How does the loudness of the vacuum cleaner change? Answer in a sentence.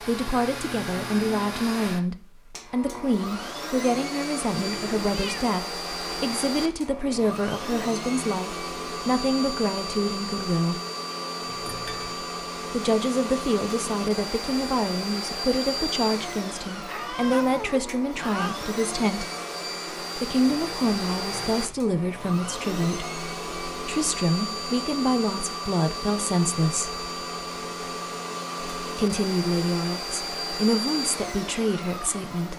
The loudness of the vacuum cleaner stays about the same.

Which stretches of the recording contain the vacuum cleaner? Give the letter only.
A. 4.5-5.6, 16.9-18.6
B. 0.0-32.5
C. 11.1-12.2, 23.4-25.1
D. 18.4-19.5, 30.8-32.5
B.